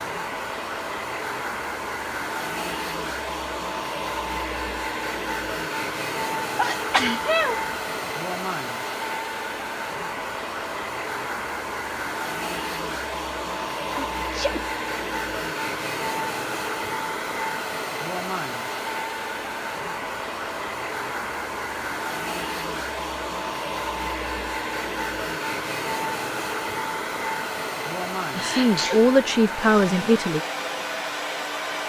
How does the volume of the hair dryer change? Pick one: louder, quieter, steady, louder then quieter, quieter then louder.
steady.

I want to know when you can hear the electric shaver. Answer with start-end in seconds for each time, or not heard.
not heard.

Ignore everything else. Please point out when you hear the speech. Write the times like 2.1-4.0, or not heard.
28.4-30.4.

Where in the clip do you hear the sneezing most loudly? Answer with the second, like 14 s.
7 s.